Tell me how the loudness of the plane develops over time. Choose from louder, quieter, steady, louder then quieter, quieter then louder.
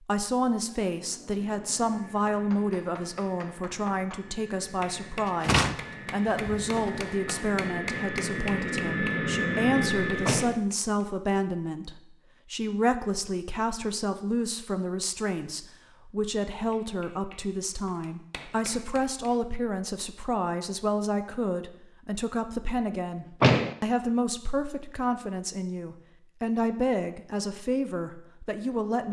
louder.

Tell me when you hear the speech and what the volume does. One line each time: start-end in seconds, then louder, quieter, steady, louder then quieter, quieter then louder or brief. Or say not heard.
0.1-29.0 steady.